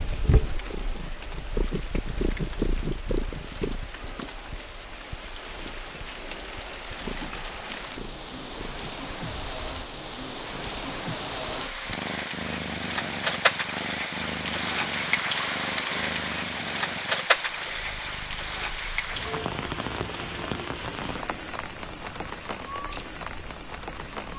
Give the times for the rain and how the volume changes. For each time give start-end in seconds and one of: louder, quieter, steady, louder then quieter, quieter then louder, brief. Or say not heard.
0.0-24.3 louder then quieter.